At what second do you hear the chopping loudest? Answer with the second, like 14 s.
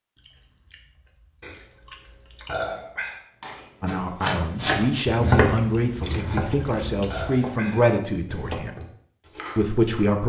5 s.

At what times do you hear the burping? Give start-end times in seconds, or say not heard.
1.4-3.2, 6.0-8.0.